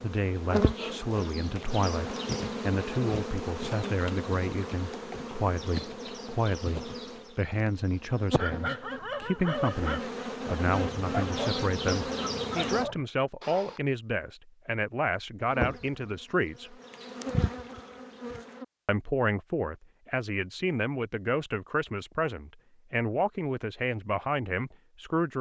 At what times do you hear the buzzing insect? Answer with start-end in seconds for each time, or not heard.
0.0-12.9, 15.4-18.6.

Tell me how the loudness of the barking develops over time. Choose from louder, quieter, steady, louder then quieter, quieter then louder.
quieter then louder.